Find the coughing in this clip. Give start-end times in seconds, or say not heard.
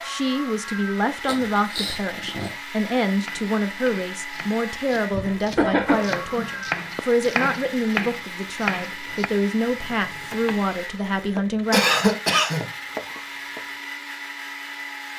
1.2-2.5, 5.1-6.5, 11.7-13.2.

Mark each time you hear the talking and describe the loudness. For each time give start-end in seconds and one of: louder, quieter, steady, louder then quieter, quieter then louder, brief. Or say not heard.
0.0-11.8 steady.